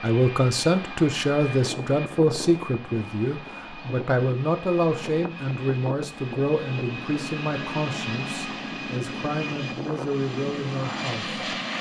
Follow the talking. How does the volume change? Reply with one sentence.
The loudness of the talking goes down.